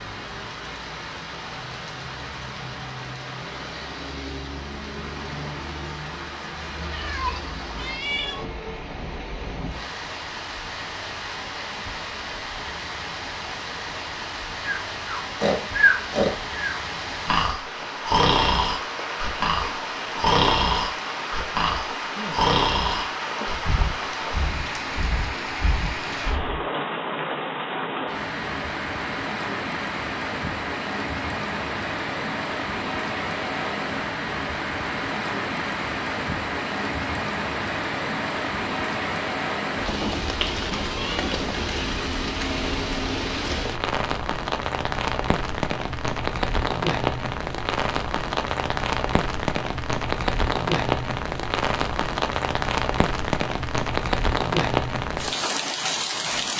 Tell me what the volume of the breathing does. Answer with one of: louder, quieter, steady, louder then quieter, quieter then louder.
quieter.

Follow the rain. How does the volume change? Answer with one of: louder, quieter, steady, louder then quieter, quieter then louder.
louder.